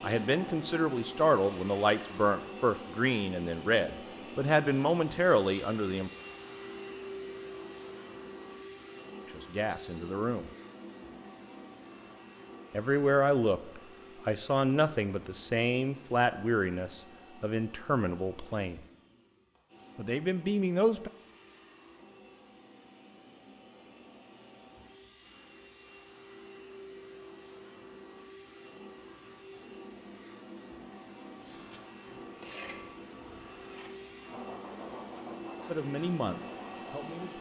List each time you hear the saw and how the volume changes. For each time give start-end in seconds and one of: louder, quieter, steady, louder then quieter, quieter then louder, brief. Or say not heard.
31.4-37.0 quieter then louder.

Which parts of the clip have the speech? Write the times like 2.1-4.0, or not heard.
0.0-6.1, 9.3-10.5, 12.7-18.8, 19.9-21.1, 35.6-37.3.